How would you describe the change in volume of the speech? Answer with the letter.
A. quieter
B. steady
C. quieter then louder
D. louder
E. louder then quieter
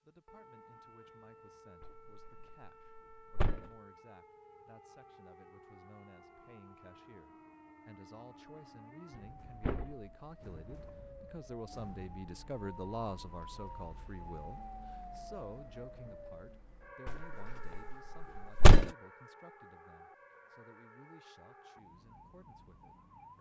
E.